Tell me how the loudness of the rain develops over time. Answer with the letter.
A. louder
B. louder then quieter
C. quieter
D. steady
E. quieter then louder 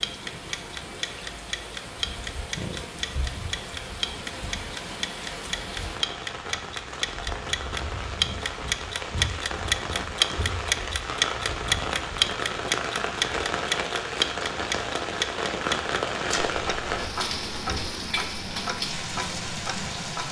A.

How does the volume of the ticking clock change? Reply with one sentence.
The loudness of the ticking clock goes up, then down.